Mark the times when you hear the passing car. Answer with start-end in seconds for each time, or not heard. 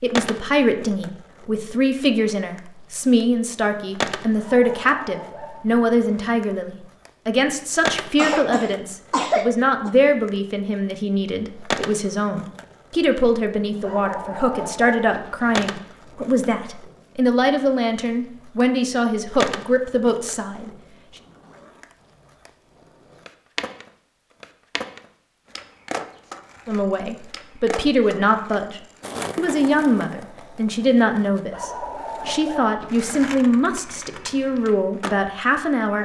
not heard.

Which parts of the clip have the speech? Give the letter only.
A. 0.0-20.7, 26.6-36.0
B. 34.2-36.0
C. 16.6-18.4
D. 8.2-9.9
A.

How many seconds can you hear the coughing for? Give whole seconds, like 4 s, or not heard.
2 s.